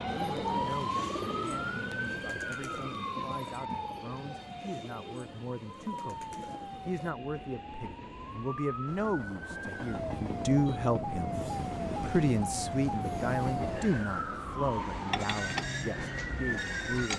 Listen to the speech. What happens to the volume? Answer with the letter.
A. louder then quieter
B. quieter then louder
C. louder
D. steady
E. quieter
A.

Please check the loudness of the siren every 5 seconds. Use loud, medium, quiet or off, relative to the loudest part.
loud, medium, loud, loud.